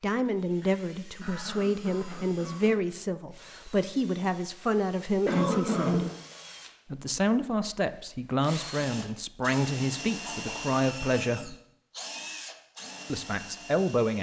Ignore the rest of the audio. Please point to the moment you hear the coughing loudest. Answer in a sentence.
The volume of the coughing peaks at 6 seconds.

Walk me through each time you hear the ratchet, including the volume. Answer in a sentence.
The ratchet can't be heard in this clip.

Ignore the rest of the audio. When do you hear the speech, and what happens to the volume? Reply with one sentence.
The speech can be heard from 0.0 to 6.0 s, at a steady volume; from 6.9 to 11.6 s, at a steady volume; and briefly from 13.1 to 14.1 s.